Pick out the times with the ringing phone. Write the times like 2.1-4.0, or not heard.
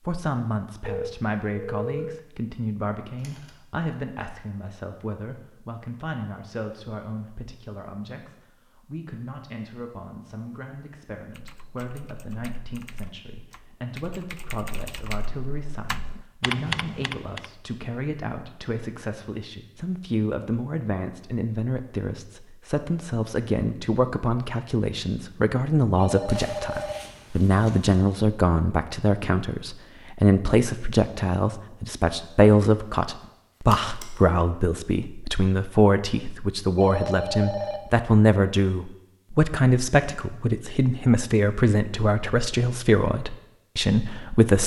0.8-2.2, 25.9-27.4, 36.8-38.0.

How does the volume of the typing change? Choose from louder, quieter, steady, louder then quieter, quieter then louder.
louder.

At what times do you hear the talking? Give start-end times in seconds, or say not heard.
0.1-44.6.